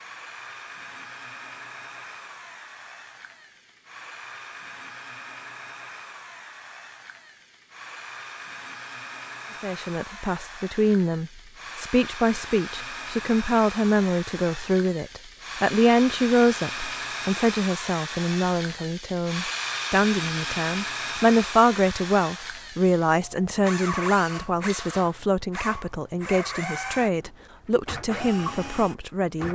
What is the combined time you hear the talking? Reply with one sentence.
You can hear the talking for 20 seconds altogether.